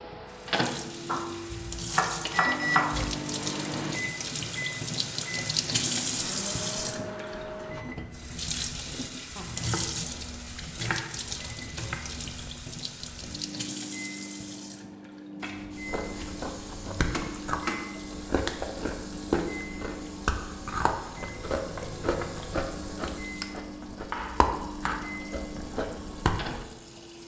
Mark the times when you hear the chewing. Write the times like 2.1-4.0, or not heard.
15.8-26.6.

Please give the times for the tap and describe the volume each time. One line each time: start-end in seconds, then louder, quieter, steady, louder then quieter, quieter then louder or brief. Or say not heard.
0.0-27.2 quieter.